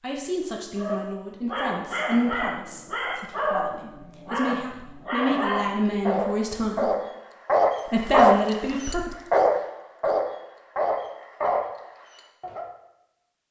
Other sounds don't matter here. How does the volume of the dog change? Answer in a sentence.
The volume of the dog goes up, then down.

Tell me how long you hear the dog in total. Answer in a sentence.
You can hear the dog for 12 seconds altogether.